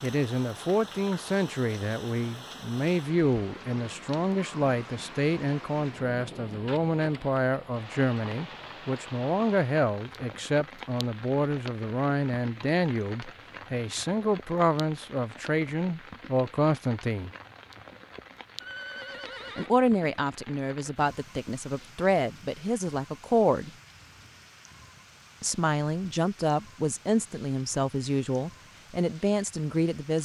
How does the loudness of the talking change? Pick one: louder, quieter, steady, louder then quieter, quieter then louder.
steady.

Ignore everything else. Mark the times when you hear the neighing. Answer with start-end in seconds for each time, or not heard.
18.6-19.8.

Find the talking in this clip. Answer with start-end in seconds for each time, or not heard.
0.0-17.3, 19.6-23.7, 25.4-30.2.